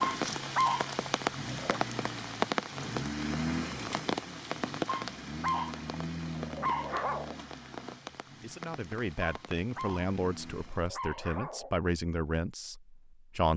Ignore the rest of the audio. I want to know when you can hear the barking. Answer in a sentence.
The barking can be heard from 0.0 to 1.8 s, from 4.8 to 7.3 s and from 9.2 to 11.7 s.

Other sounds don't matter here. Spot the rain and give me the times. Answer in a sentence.
You can hear the rain from 0.0 to 10.9 s.